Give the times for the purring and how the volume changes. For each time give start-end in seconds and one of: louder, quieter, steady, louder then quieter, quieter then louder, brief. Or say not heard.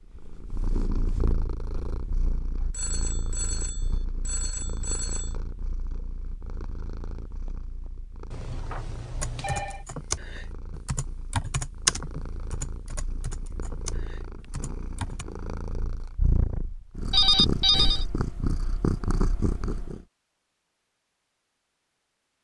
0.1-20.1 quieter then louder.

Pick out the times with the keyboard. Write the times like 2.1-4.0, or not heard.
9.2-15.2.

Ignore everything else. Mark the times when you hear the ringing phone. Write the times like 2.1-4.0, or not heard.
2.7-5.3, 8.3-9.8, 17.1-18.1.